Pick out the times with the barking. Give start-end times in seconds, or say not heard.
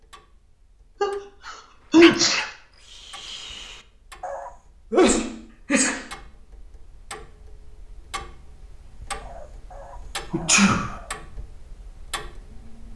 1.4-4.5, 9.2-11.2.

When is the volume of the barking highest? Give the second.
2 s.